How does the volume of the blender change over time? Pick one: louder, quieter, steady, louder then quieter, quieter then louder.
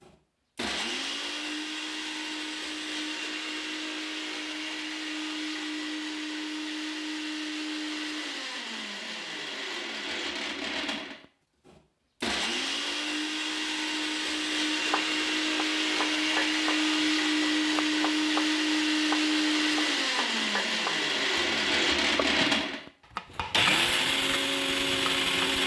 louder.